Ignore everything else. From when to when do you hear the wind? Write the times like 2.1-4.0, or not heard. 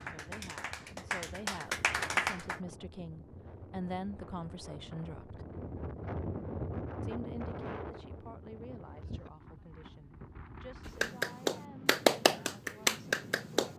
0.0-13.7.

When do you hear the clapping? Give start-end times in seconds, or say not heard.
0.0-2.6, 11.0-13.7.